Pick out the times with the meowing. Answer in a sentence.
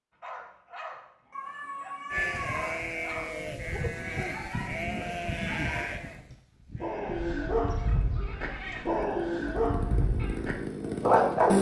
The meowing can be heard from 1.3 to 2.6 s and from 7.0 to 9.1 s.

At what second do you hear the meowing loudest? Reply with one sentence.
The loudest moment of the meowing is at 2 seconds.